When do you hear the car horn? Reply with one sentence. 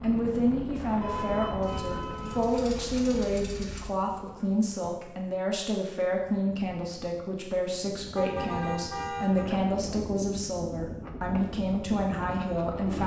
The car horn can be heard from 1.0 to 2.5 s and from 8.2 to 9.5 s.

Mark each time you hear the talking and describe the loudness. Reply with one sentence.
You can hear the talking from 0.0 to 13.0 s, at a steady volume.